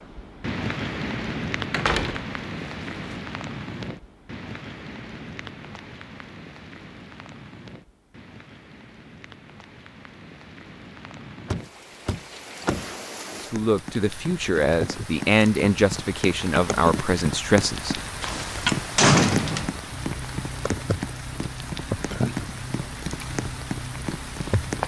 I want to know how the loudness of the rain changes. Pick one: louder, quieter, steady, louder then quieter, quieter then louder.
quieter then louder.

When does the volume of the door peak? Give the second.
19 s.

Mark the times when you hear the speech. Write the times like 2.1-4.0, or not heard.
13.4-18.0.